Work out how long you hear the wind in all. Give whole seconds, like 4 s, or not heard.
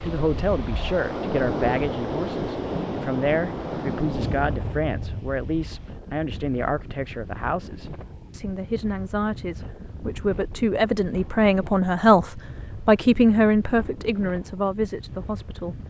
16 s.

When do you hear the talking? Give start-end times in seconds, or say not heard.
0.0-15.8.